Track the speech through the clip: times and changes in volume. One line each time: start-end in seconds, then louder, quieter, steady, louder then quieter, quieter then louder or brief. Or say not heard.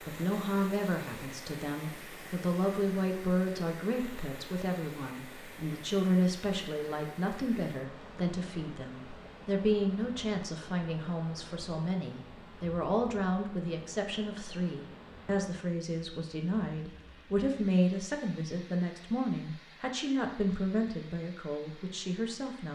0.1-22.7 steady.